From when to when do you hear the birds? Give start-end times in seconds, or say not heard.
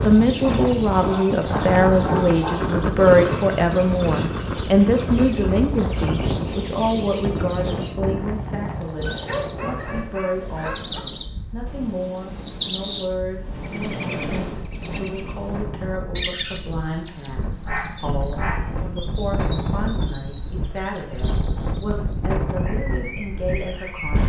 0.0-24.2.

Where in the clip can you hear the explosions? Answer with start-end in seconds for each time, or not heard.
not heard.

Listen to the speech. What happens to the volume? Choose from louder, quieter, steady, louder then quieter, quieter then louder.
quieter.